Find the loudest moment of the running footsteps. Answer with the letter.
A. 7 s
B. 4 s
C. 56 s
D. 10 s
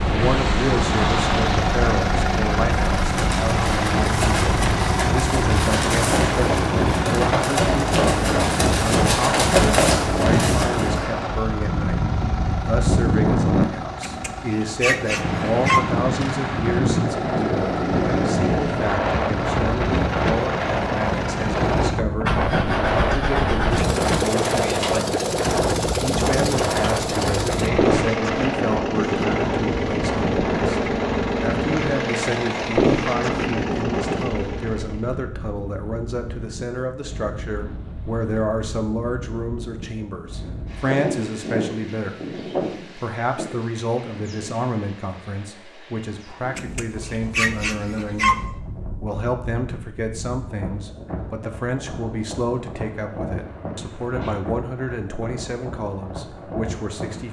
D.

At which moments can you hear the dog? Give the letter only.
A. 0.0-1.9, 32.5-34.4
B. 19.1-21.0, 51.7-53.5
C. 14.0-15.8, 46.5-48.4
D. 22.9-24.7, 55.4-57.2
C.